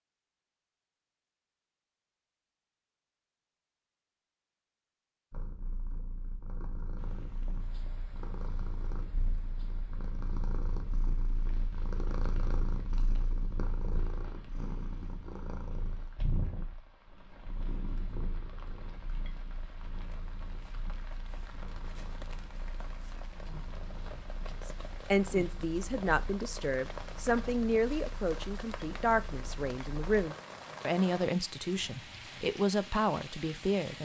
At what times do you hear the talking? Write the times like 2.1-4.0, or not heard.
24.6-33.9.